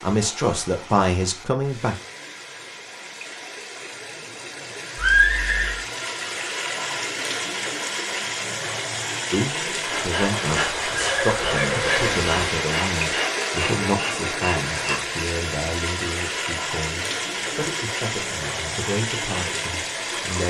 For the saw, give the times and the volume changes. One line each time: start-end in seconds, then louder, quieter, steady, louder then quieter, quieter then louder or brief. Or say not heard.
9.8-15.0 steady.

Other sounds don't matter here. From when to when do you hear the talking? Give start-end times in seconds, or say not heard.
0.0-1.9, 9.3-20.4.